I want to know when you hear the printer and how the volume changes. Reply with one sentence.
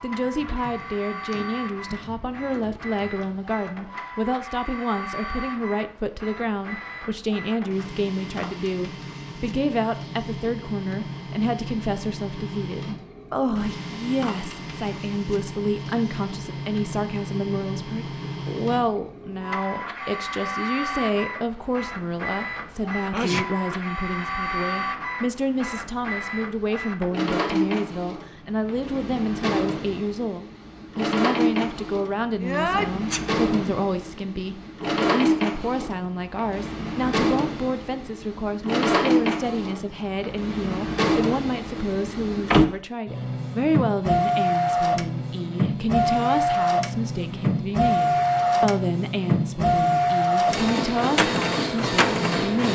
You can hear the printer from 0.0 to 52.7 s, getting louder.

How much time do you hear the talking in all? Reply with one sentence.
You can hear the talking for 53 seconds altogether.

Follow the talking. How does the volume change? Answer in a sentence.
The loudness of the talking stays about the same.